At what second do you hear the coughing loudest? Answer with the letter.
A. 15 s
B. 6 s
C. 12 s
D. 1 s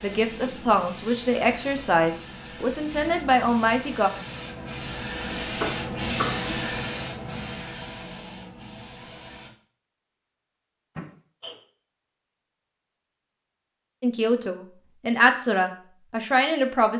B.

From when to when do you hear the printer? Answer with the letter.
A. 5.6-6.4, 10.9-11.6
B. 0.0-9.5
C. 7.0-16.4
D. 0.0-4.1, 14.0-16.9
B.